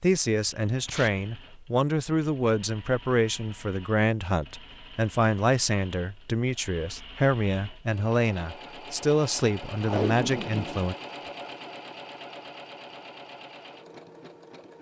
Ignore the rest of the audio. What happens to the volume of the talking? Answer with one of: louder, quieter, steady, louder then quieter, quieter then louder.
steady.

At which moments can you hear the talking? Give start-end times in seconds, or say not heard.
0.0-10.9.